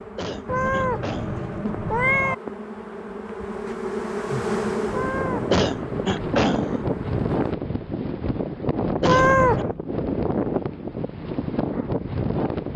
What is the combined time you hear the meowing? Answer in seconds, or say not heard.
4 s.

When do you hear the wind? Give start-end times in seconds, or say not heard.
4.8-12.7.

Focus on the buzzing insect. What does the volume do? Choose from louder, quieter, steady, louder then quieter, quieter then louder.
louder then quieter.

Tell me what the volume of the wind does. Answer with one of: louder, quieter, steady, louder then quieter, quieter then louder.
steady.